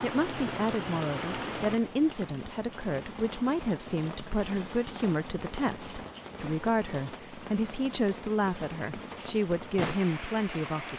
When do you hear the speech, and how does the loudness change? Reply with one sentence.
The speech can be heard from 0.0 to 10.9 s, at a steady volume.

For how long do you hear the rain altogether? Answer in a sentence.
The rain can be heard for 11 seconds in total.